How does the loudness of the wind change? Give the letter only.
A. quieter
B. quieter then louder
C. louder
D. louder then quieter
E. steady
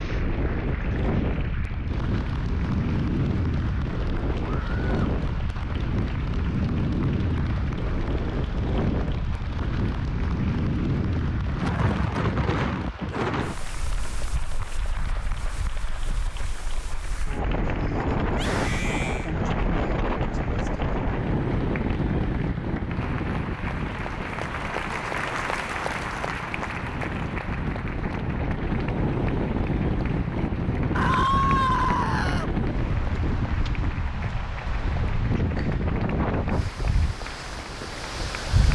E.